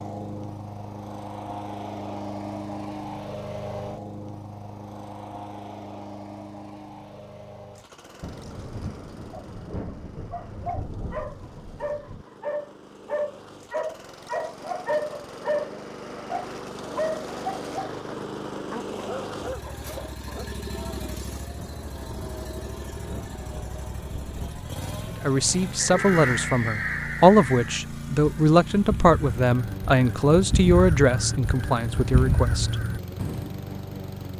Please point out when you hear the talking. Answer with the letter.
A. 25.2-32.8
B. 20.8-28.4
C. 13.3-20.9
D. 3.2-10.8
A.